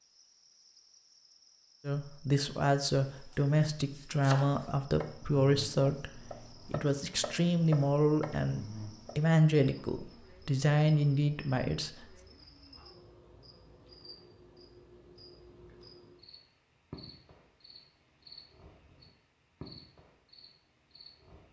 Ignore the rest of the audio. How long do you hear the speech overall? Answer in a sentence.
You can hear the speech for 10 seconds altogether.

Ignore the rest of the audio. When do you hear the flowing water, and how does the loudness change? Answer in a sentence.
The flowing water can't be heard in this clip.